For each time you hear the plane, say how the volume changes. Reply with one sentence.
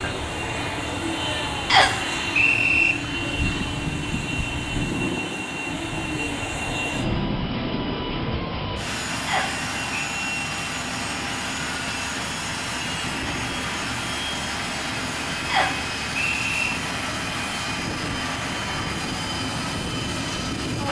You can hear the plane from 0.0 to 20.8 s, at a steady volume.